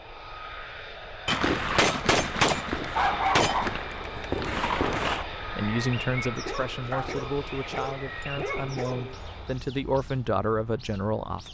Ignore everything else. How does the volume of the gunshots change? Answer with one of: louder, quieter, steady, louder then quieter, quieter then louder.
quieter then louder.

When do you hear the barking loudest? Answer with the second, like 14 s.
3 s.